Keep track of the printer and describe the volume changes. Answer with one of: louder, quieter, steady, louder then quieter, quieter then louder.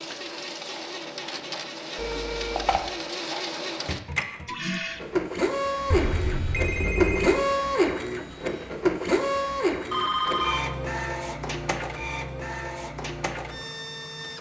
louder then quieter.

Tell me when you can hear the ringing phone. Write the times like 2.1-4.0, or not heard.
1.9-2.9, 5.9-7.5, 9.9-10.8.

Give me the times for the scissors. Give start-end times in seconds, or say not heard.
not heard.